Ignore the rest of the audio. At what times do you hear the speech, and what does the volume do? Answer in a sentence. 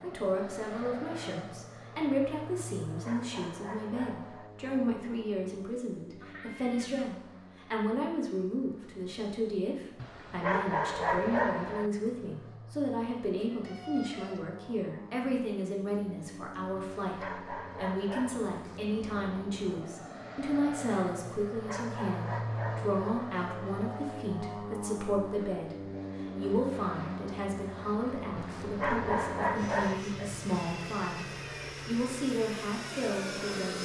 You can hear the speech from 0.0 to 33.8 s, at a steady volume.